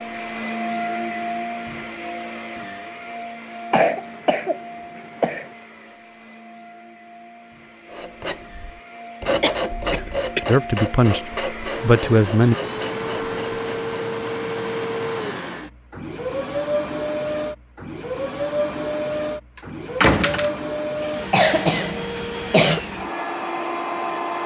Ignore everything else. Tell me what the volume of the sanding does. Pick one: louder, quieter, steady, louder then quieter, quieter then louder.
quieter.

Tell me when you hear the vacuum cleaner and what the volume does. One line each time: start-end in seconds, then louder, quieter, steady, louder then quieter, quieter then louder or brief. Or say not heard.
0.0-24.4 quieter then louder.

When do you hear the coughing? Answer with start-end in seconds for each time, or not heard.
3.7-5.5, 9.4-10.6, 21.0-22.8.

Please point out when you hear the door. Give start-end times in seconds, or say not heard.
20.0-20.6.